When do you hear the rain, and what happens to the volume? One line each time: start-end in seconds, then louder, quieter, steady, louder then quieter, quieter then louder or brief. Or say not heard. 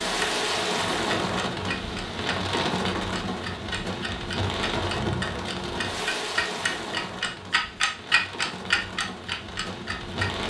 0.0-10.4 quieter.